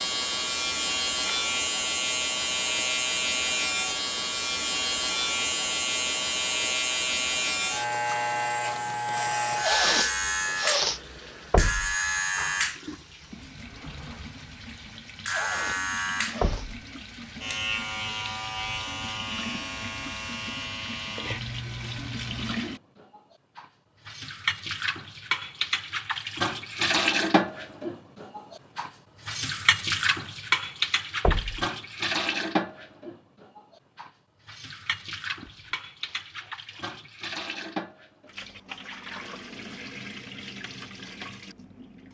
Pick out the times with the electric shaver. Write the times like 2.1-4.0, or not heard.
0.0-22.6.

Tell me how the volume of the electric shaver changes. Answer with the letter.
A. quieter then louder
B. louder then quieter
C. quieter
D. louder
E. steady
C.